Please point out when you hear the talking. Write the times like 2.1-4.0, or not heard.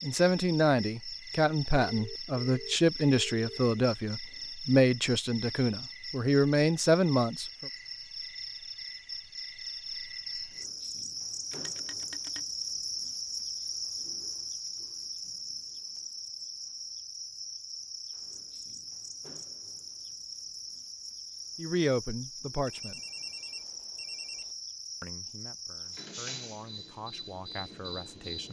0.0-7.7, 21.6-23.0, 25.0-28.4.